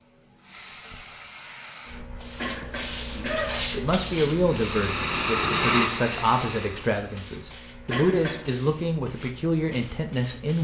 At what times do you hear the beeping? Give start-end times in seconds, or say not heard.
not heard.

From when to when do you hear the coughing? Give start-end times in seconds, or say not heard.
2.4-3.6, 7.8-8.6.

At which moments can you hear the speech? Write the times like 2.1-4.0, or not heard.
3.1-10.5.